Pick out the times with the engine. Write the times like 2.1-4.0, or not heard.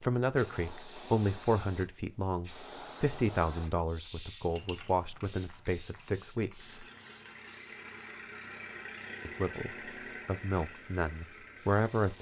6.5-12.1.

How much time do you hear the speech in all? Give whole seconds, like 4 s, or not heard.
10 s.